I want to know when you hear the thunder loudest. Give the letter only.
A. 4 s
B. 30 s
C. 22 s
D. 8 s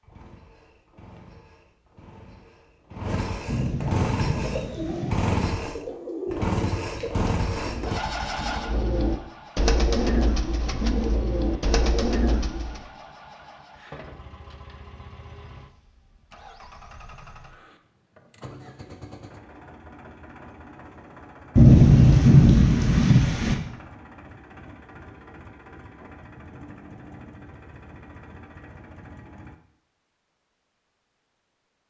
C.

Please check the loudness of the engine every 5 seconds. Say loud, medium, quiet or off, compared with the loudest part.
medium, loud, quiet, quiet, quiet, quiet, off.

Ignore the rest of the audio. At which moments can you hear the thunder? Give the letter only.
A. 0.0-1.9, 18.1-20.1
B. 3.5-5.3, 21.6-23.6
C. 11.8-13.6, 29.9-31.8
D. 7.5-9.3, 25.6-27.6
B.